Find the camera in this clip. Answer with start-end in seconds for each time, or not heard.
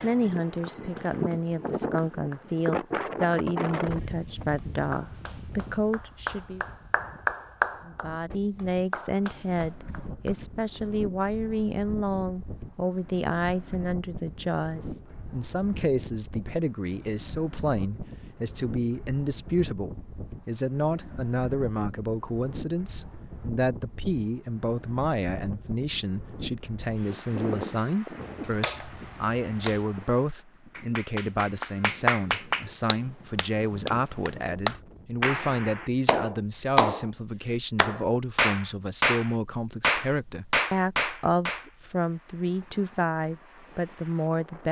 28.1-29.9.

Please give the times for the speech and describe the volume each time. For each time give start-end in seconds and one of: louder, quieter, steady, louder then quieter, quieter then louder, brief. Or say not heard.
0.0-6.7 steady
7.8-44.6 steady.